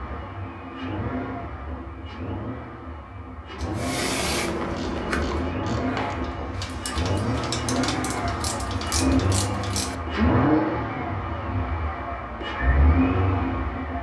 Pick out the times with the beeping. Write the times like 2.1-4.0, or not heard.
not heard.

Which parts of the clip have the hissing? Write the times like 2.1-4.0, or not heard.
3.8-6.3.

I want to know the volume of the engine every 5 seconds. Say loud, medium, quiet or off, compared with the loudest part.
medium, loud, loud.